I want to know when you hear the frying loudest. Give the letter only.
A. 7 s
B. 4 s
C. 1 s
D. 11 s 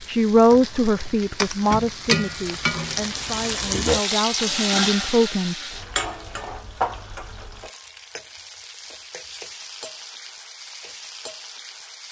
B.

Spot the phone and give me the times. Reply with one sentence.
The phone can't be heard in this clip.